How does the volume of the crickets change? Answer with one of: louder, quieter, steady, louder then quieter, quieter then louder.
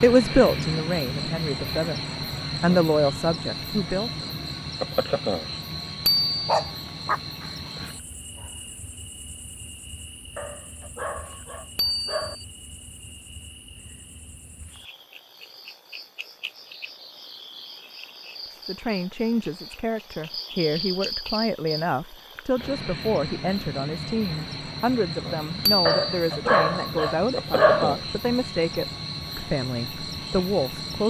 quieter then louder.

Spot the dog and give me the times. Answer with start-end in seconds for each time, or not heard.
6.5-8.0, 10.3-12.3, 25.9-27.9.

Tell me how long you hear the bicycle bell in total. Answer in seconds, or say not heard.
2 s.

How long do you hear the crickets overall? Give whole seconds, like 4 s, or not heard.
31 s.